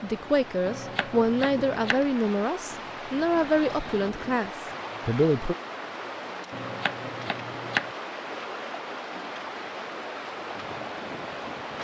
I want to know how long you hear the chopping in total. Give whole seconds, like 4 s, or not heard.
3 s.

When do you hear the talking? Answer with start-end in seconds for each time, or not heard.
0.0-5.5.